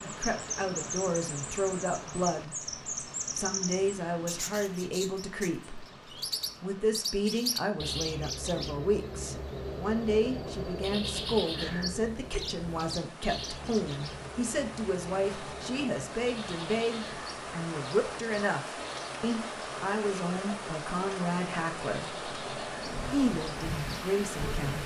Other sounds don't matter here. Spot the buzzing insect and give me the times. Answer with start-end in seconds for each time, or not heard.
22.8-24.8.